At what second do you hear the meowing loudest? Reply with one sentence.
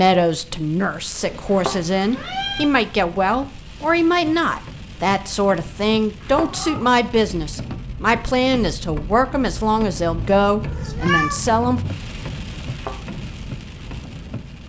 The loudest moment of the meowing is at 11 seconds.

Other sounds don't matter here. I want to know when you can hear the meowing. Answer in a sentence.
You can hear the meowing from 1.2 to 2.7 s, from 6.5 to 7.0 s and from 10.6 to 11.3 s.